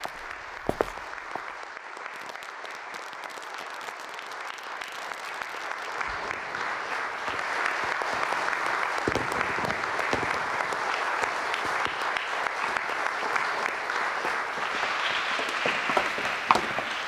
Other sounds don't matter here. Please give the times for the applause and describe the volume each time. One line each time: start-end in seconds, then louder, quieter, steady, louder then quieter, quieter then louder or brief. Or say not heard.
0.0-17.0 louder.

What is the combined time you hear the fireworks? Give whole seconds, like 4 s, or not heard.
10 s.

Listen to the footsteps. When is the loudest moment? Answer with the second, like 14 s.
16 s.